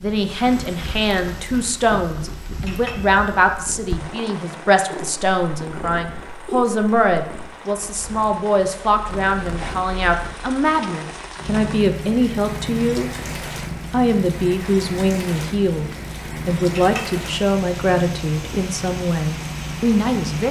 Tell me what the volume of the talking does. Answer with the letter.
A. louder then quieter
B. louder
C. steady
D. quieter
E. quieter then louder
C.